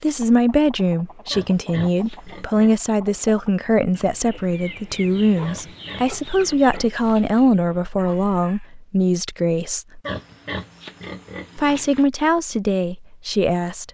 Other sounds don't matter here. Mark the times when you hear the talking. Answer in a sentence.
You can hear the talking from 0.0 to 10.0 s and from 11.6 to 13.8 s.